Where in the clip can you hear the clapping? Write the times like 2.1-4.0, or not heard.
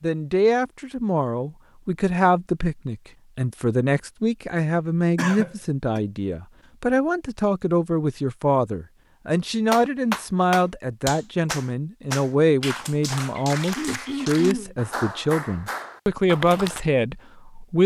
9.7-16.8.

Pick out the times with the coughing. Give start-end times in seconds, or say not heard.
5.2-6.0, 13.8-14.8.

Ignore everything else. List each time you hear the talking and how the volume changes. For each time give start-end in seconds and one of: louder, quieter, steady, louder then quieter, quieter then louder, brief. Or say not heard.
0.0-17.8 steady.